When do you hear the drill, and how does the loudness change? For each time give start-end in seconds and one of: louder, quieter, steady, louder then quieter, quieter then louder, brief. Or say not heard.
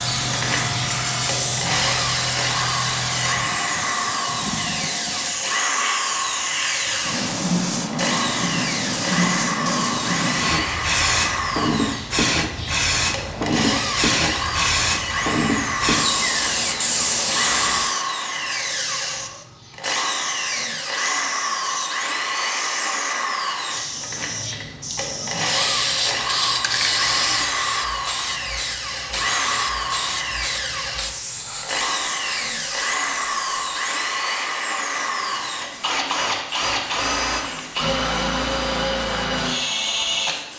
0.0-40.4 steady.